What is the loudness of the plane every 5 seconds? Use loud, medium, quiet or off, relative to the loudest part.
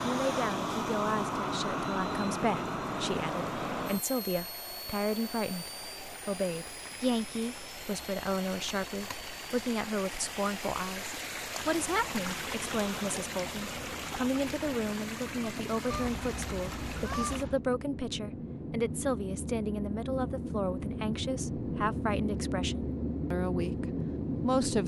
loud, quiet, quiet, medium, loud.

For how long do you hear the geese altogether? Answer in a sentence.
You can hear the geese for 2 seconds altogether.